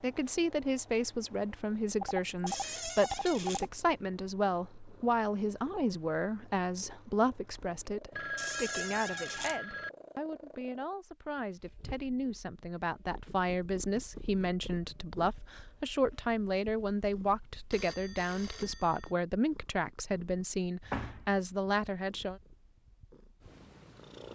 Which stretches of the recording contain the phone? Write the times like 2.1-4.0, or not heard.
2.0-3.6, 8.1-9.9, 17.7-19.1.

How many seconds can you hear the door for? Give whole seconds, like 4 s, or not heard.
3 s.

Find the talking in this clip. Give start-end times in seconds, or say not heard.
0.0-22.4.